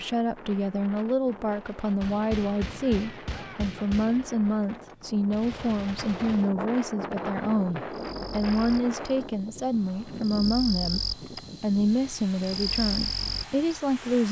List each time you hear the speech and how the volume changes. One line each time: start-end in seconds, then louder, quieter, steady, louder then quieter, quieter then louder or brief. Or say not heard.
0.0-14.2 steady.